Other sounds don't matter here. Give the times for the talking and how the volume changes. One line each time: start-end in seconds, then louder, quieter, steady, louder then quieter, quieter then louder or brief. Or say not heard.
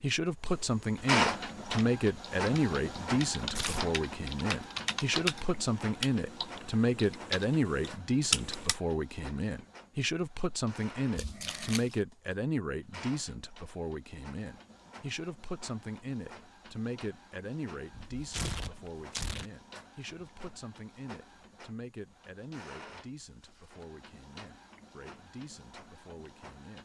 0.0-26.8 quieter.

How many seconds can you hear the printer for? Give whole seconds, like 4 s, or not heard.
27 s.